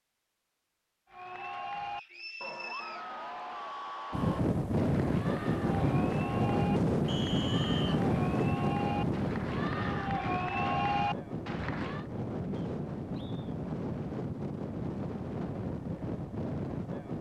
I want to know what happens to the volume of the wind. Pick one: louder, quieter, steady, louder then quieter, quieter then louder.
quieter.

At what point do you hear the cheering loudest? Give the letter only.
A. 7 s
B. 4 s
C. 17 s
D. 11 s
D.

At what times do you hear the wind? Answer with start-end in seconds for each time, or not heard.
4.1-17.1.